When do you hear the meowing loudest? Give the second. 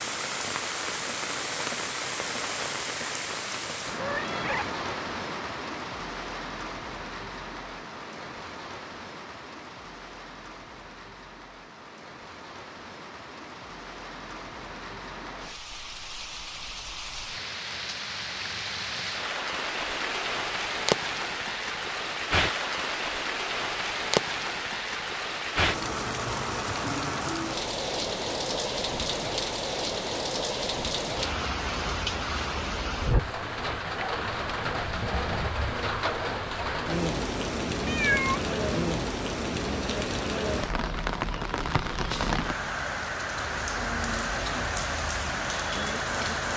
38 s.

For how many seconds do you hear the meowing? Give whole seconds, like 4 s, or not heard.
2 s.